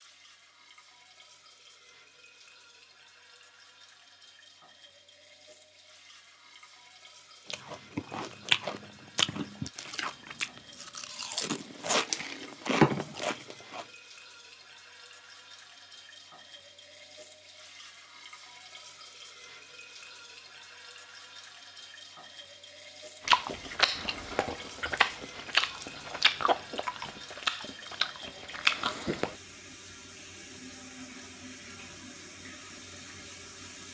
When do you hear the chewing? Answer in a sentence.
The chewing can be heard from 7.5 to 13.8 s and from 23.2 to 29.4 s.